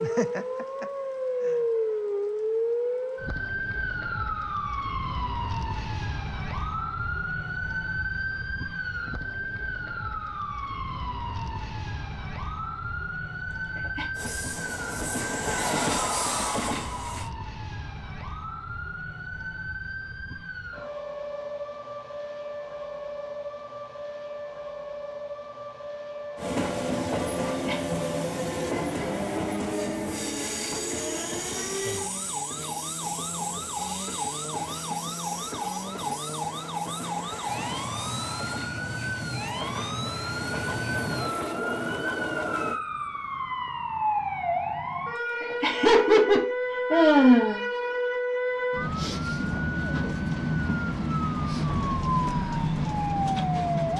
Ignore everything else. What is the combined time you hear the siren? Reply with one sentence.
You can hear the siren for 54 seconds altogether.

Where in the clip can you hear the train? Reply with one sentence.
The train can be heard from 14.2 to 17.3 s and from 26.4 to 42.8 s.